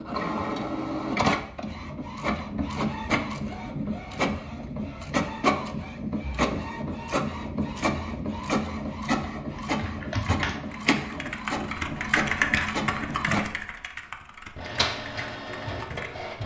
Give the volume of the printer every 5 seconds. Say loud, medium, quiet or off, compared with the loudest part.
loud, loud, loud, medium.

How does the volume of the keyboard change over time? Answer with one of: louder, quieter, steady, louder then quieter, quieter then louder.
louder then quieter.